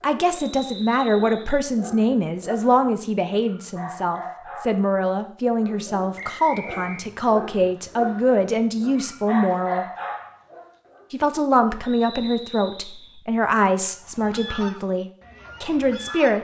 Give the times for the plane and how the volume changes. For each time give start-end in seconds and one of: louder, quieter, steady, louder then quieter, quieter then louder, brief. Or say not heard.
not heard.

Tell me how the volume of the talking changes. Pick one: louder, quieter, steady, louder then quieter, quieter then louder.
steady.